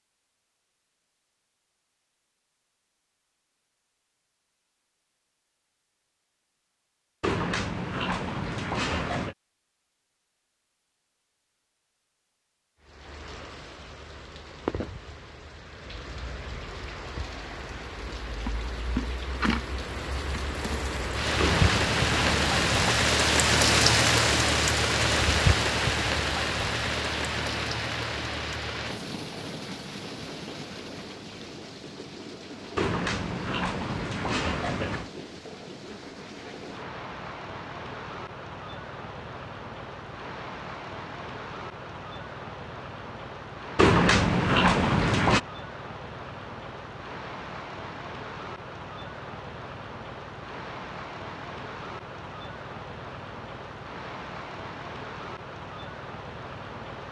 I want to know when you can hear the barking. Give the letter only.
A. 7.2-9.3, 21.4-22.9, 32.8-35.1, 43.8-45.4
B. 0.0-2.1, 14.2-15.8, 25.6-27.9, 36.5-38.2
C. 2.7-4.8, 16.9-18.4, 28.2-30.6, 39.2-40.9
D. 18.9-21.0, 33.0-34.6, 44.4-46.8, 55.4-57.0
A.